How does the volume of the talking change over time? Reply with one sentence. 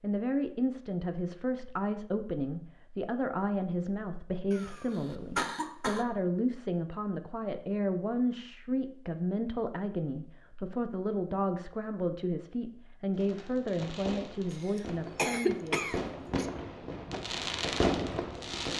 The volume of the talking stays about the same.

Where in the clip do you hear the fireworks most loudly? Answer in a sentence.
The volume of the fireworks peaks at 18 seconds.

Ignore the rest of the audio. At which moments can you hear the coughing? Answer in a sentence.
You can hear the coughing from 4.5 to 6.0 s and from 14.5 to 16.4 s.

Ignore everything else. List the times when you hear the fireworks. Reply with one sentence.
You can hear the fireworks from 13.2 to 18.7 s.